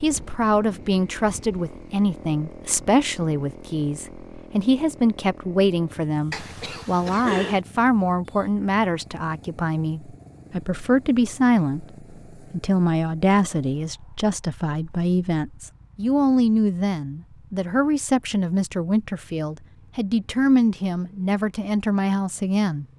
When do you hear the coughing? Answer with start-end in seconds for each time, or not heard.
6.3-7.6.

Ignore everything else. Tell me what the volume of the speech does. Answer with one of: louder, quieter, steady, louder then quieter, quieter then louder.
steady.